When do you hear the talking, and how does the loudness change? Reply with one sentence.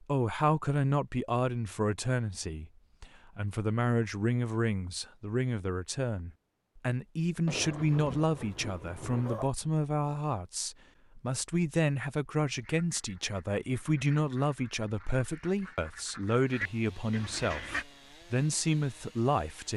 The talking can be heard from 0.0 to 19.7 s, at a steady volume.